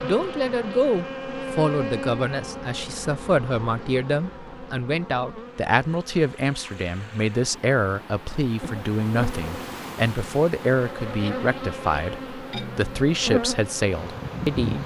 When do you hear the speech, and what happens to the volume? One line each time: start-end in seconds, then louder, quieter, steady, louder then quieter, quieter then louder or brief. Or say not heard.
0.0-14.8 steady.